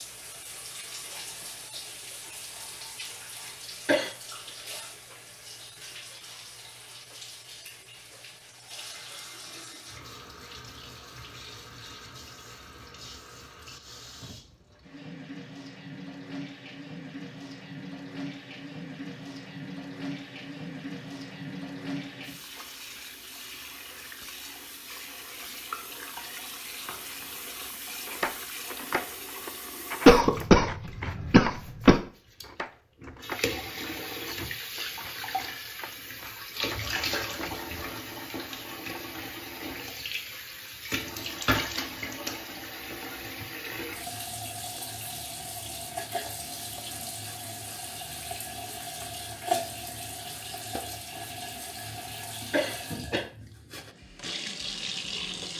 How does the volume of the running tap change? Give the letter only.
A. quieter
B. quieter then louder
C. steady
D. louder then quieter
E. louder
E.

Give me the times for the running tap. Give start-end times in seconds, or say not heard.
0.0-55.5.